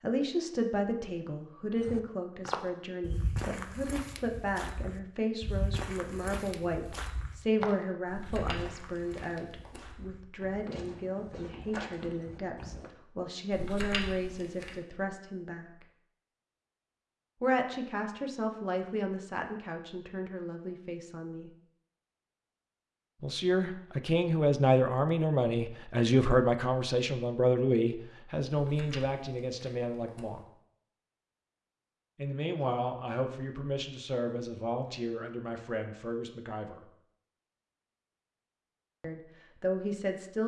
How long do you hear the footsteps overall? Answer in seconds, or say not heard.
11 s.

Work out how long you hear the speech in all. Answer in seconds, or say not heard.
33 s.